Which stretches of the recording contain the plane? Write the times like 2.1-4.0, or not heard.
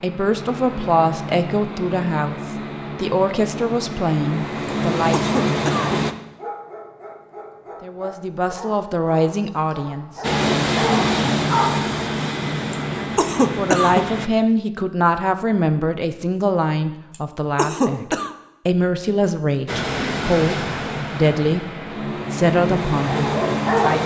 0.0-6.2, 10.2-14.3, 19.6-24.0.